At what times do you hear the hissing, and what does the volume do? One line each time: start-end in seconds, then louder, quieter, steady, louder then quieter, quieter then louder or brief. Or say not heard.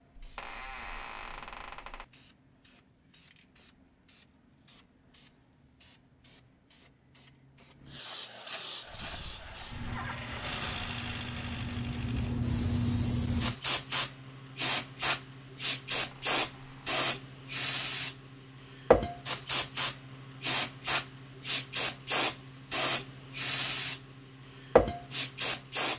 0.0-25.9 louder.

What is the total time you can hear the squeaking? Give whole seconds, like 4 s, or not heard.
3 s.